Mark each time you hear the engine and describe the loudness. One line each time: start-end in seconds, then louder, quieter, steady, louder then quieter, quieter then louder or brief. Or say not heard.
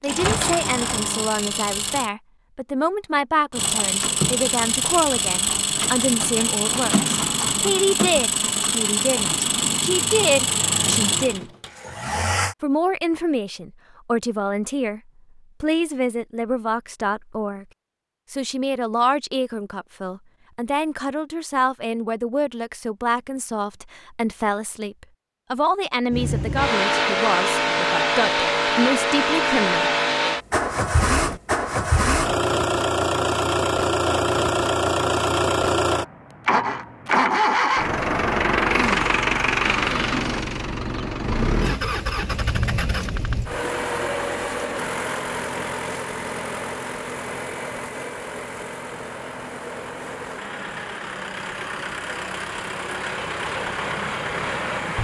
0.0-2.1 brief
3.5-12.6 steady
26.1-54.9 quieter.